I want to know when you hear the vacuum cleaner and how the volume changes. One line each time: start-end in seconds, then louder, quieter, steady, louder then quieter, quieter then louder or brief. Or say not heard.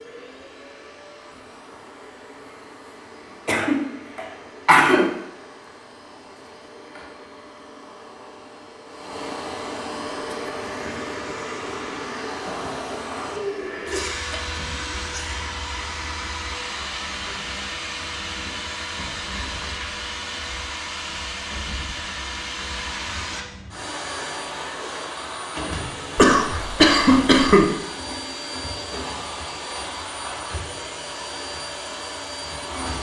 0.0-32.9 louder.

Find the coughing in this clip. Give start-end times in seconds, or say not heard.
3.5-5.1, 13.8-15.4, 26.1-27.6.